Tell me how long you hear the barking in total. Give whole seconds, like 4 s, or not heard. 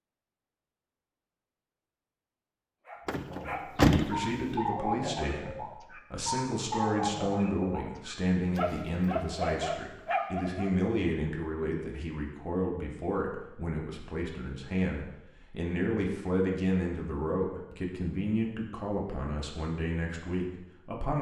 8 s.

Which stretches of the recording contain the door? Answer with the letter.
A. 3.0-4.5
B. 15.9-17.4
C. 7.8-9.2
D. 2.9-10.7
A.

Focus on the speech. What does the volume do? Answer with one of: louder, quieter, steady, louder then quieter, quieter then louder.
steady.